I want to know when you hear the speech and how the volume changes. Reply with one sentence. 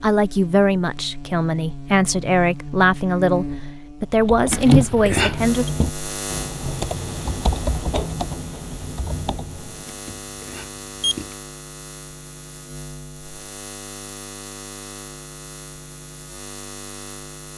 The speech can be heard from 0.0 to 5.7 s, at a steady volume.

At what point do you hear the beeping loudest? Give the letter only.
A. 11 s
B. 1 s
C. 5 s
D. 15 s
C.